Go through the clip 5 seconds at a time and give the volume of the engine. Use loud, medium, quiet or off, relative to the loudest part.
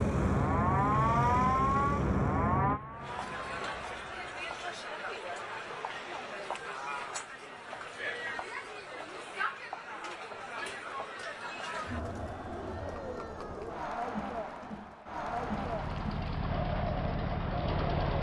medium, off, off, loud.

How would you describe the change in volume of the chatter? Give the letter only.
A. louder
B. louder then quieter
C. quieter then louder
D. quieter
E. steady
E.